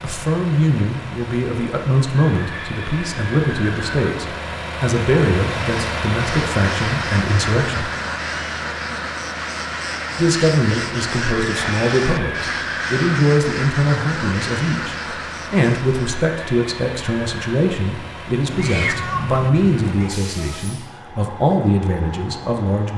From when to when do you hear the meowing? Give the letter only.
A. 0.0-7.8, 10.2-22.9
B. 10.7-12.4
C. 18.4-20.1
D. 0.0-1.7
C.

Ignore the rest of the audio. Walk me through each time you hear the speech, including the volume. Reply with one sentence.
The speech can be heard from 0.0 to 7.8 s, at a steady volume; and from 10.2 to 22.9 s, at a steady volume.